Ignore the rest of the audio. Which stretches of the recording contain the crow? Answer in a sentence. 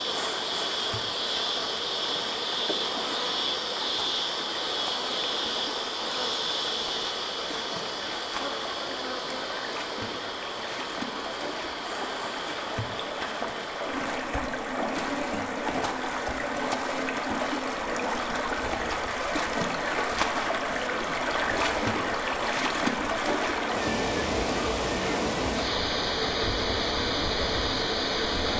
You can't hear the crow here.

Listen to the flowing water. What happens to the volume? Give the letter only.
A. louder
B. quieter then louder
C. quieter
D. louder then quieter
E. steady
A.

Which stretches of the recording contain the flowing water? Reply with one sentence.
You can hear the flowing water from 0.0 to 28.5 s.